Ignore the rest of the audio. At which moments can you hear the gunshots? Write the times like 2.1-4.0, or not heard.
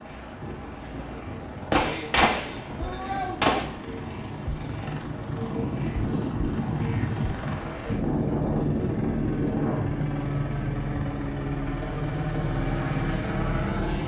1.7-3.6.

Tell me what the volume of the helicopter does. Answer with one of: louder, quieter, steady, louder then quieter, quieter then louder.
louder.